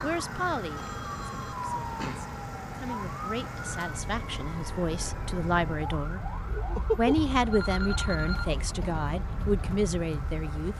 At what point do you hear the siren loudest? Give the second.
7 s.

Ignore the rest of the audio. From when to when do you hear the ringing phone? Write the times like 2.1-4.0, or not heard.
0.8-2.3, 7.5-8.5.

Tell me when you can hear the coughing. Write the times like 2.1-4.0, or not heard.
not heard.